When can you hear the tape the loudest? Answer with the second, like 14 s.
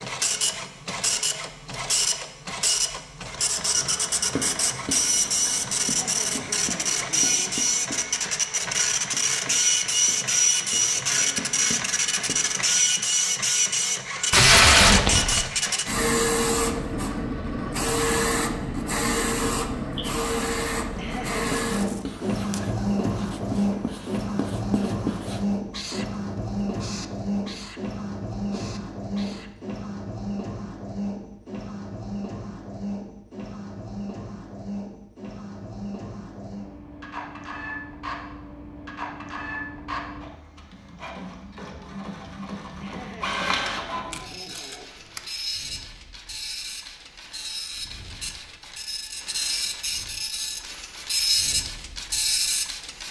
15 s.